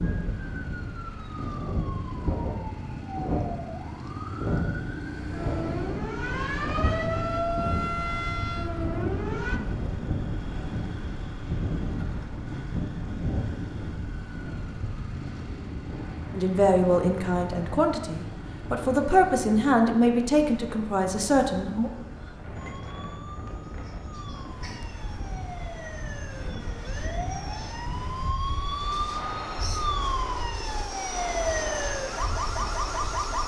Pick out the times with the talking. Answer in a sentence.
The talking can be heard from 16.3 to 21.9 s.